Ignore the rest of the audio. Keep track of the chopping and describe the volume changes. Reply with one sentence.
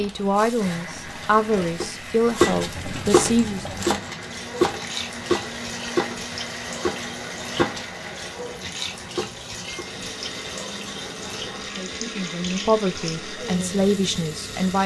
The loudness of the chopping goes down.